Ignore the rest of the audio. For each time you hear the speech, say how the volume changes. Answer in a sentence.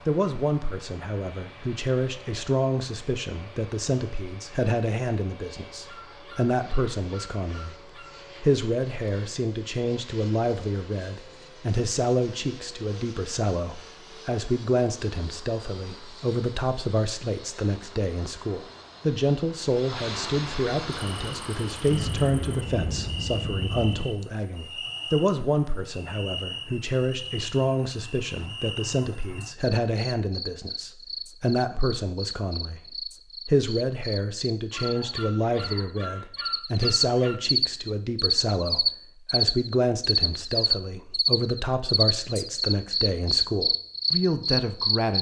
You can hear the speech from 0.1 to 45.1 s, at a steady volume.